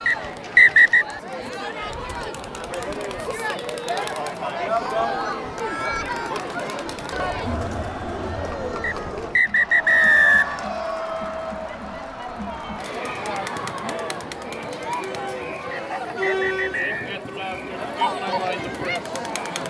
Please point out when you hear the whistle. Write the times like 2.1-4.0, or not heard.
0.1-1.1, 8.8-10.7, 15.7-16.9.